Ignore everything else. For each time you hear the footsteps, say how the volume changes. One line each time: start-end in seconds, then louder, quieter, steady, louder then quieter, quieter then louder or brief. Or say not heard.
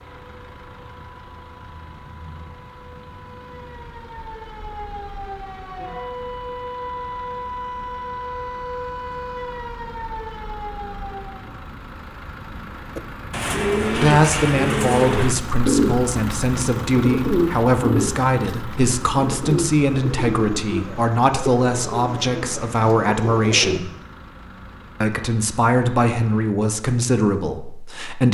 not heard.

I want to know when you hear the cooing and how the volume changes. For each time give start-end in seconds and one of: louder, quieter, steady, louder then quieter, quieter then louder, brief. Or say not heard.
12.9-23.8 quieter.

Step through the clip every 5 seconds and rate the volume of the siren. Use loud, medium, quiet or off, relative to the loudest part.
medium, loud, loud, off, off, off.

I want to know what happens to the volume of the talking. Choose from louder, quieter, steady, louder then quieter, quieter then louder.
steady.